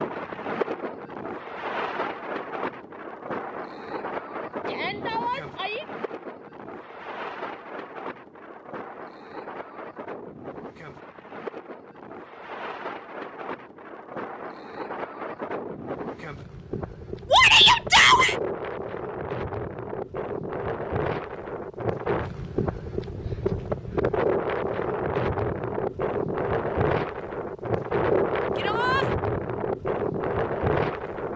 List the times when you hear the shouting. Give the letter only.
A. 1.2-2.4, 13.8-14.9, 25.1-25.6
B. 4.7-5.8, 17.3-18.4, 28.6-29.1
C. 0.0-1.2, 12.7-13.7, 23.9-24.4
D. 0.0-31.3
B.